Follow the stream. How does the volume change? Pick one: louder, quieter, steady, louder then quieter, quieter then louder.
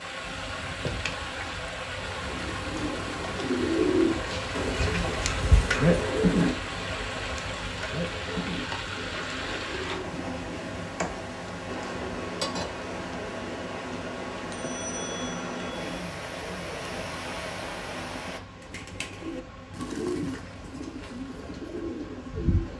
steady.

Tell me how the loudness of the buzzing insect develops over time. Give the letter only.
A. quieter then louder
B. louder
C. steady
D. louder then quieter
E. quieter
E.